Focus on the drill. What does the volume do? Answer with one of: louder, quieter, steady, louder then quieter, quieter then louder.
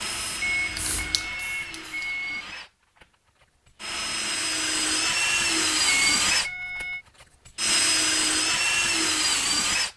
louder.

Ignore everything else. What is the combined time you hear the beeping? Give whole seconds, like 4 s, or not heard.
3 s.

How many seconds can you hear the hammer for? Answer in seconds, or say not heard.
not heard.